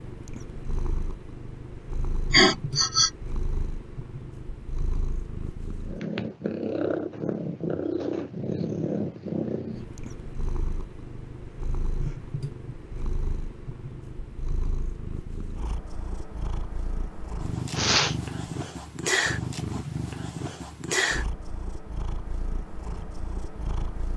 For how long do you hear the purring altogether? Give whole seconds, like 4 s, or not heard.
24 s.